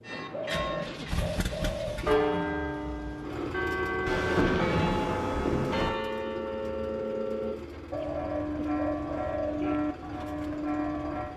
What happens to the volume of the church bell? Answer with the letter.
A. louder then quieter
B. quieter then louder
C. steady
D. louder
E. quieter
C.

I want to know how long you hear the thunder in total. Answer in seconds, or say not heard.
2 s.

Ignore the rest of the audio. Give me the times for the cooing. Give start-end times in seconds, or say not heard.
0.3-2.2, 7.9-9.8.